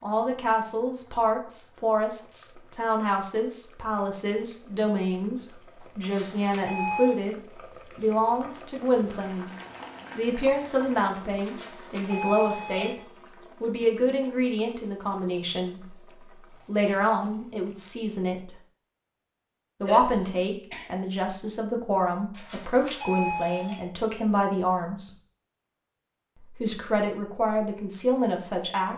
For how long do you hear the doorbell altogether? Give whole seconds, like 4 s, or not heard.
4 s.